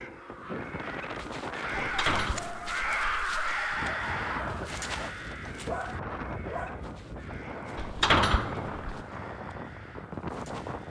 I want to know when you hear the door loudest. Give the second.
8 s.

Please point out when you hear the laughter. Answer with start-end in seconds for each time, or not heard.
not heard.